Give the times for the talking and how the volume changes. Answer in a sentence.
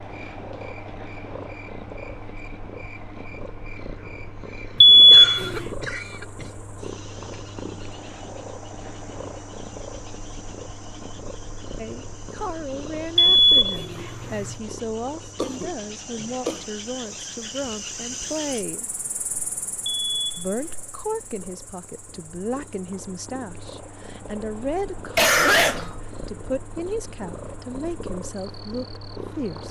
The talking can be heard from 11.8 to 18.9 s, at a steady volume; and from 20.4 to 29.6 s, at a steady volume.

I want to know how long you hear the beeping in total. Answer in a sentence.
You can hear the beeping for 3 seconds altogether.